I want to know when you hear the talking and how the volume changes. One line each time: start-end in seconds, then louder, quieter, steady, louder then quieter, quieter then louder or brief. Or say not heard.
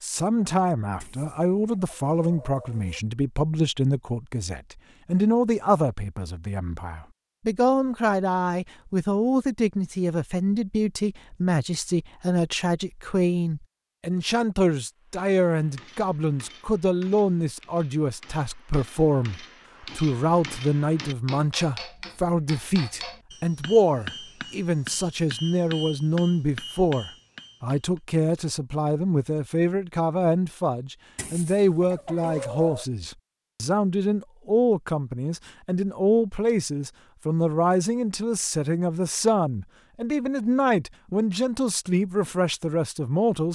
0.0-43.4 steady.